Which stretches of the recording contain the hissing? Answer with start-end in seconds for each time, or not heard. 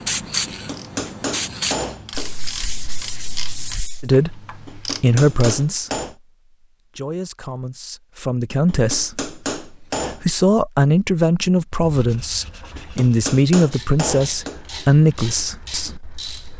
0.0-3.5.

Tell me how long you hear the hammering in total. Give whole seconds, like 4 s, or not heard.
7 s.